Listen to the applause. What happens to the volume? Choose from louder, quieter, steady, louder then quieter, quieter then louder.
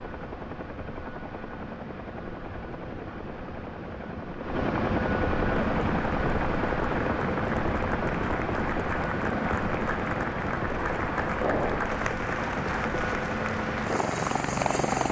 steady.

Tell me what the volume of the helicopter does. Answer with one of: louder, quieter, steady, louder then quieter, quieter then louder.
louder.